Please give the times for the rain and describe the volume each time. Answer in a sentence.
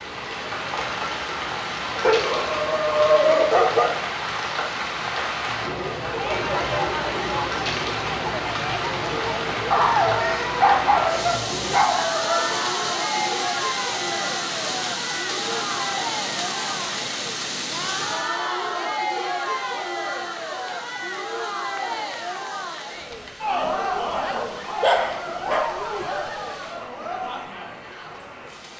The rain can be heard from 0.0 to 28.7 s, getting quieter.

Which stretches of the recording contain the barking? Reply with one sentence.
You can hear the barking from 1.9 to 3.9 s, from 9.7 to 12.6 s and from 24.1 to 25.7 s.